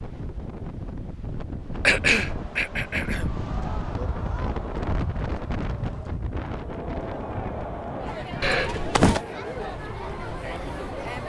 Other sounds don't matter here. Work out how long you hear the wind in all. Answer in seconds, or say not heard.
11 s.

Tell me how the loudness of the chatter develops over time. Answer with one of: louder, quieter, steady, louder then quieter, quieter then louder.
louder.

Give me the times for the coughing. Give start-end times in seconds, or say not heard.
1.9-3.3, 8.4-9.2.